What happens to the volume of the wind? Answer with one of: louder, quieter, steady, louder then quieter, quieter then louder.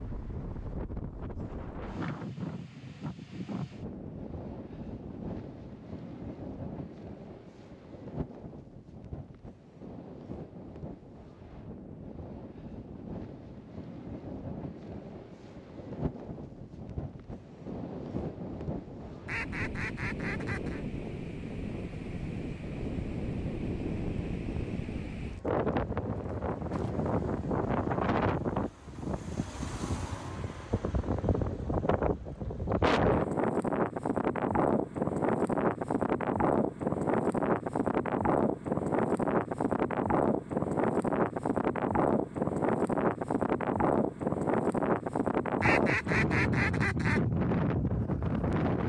louder.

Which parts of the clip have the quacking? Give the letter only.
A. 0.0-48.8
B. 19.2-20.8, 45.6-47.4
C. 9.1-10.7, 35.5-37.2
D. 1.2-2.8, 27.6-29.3
B.